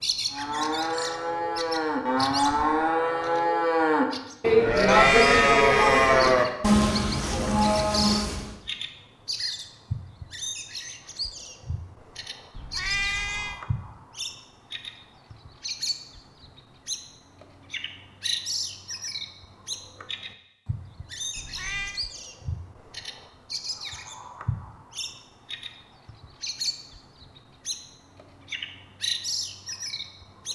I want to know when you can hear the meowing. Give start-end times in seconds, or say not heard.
4.8-6.3, 12.6-13.7, 21.4-22.0.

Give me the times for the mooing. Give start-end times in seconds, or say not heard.
0.3-8.6.